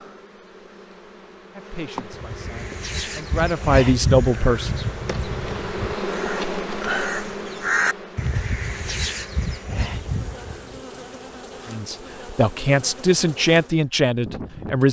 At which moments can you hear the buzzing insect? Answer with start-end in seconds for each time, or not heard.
0.0-14.8.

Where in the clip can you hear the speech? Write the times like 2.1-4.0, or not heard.
1.5-4.8, 11.7-14.8.